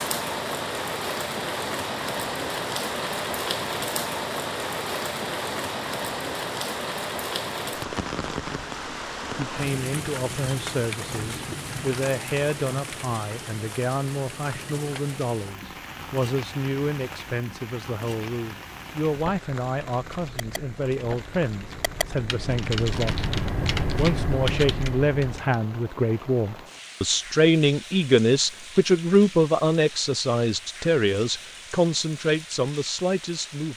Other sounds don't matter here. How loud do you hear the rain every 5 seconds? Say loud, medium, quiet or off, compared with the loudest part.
loud, loud, medium, medium, quiet, quiet, quiet.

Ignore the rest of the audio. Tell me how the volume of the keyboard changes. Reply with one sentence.
The volume of the keyboard goes up.